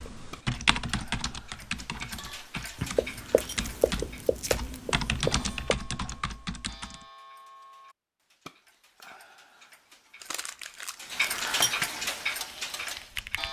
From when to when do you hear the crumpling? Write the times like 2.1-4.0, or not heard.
3.4-4.7, 10.2-11.9.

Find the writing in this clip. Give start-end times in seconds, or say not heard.
2.8-5.8.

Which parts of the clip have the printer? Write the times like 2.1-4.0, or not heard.
not heard.